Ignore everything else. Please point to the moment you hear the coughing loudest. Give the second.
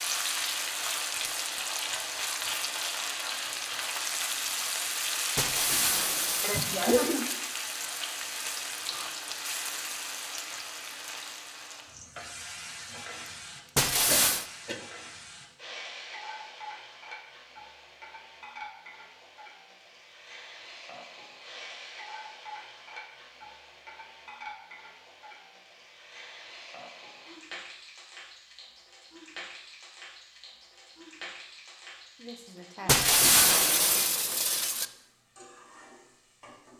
7 s.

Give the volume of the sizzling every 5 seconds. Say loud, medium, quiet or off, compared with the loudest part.
loud, loud, medium, quiet, quiet, quiet, quiet, quiet.